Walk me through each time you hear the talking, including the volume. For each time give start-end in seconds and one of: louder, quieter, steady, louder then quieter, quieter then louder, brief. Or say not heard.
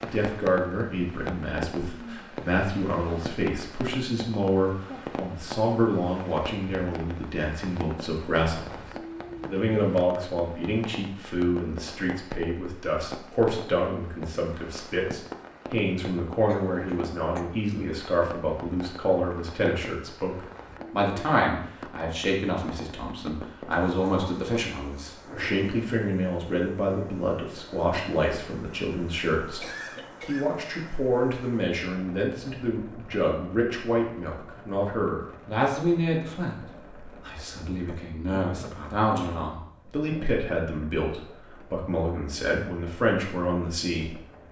0.0-44.2 steady.